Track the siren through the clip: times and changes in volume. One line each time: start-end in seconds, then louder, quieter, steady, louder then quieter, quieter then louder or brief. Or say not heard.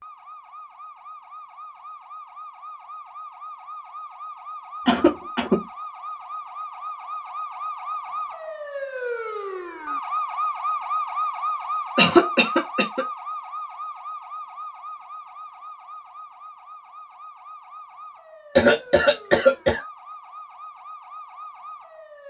0.0-22.2 louder then quieter.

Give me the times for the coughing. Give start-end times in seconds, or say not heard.
4.8-5.6, 11.9-13.1, 18.6-19.8.